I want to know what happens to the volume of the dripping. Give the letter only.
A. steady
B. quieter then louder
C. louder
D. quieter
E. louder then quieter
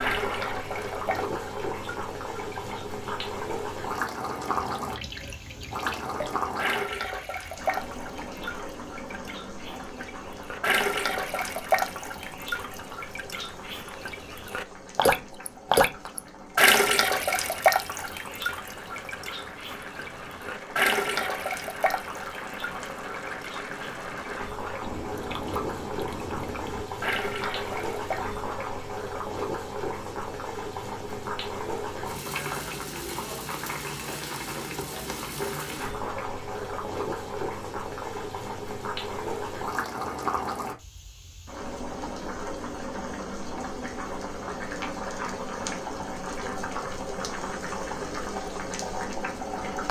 E.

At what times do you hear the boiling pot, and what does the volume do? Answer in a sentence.
You can hear the boiling pot from 0.0 to 49.8 s, getting quieter then louder.